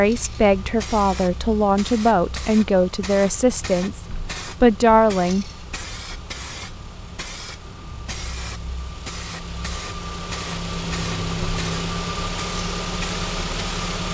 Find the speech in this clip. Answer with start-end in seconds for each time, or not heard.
0.0-5.5.